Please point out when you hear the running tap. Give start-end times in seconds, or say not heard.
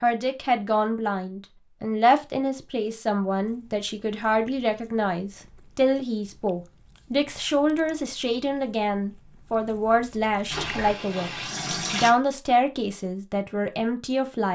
10.5-12.1.